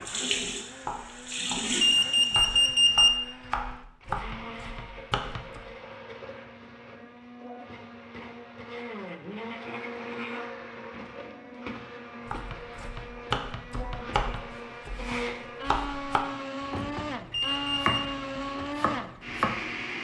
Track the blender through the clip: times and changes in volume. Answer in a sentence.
The blender can be heard from 0.0 to 19.9 s, getting louder.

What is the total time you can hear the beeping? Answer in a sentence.
The beeping can be heard for 2 seconds in total.